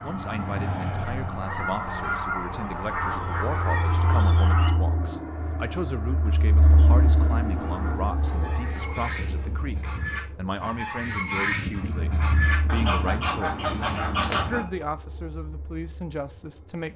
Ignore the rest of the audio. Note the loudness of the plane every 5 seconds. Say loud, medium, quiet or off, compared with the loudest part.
loud, loud, medium, quiet.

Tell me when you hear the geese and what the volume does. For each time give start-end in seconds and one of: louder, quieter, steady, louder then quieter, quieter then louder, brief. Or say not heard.
0.0-4.8 louder
7.5-14.7 louder.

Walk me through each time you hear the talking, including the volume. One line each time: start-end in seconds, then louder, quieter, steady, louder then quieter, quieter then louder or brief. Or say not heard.
0.0-16.9 steady.